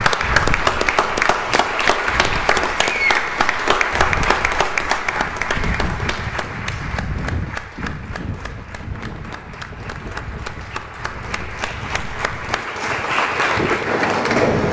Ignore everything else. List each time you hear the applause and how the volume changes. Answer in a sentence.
You can hear the applause from 0.0 to 14.6 s, getting quieter then louder.